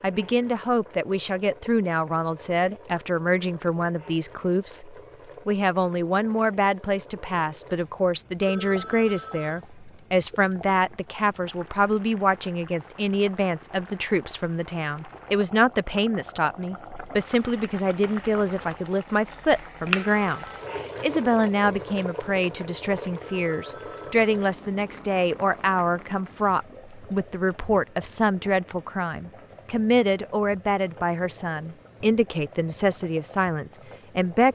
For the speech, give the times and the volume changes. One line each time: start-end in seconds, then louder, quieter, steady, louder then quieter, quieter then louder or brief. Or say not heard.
0.0-34.4 steady.